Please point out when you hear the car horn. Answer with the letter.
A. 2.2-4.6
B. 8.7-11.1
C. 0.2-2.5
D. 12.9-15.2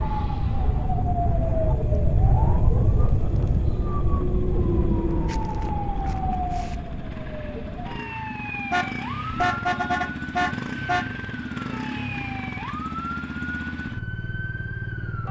B.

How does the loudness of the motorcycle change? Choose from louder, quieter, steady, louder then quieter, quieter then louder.
louder.